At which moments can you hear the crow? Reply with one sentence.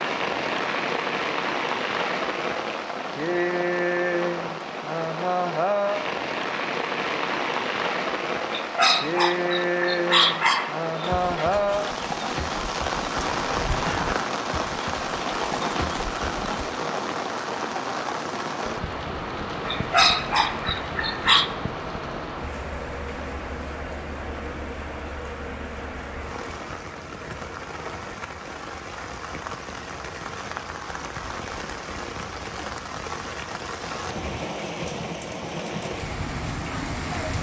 You can't hear the crow here.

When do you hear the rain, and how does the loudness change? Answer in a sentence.
The rain can be heard from 0.0 to 37.3 s, getting quieter.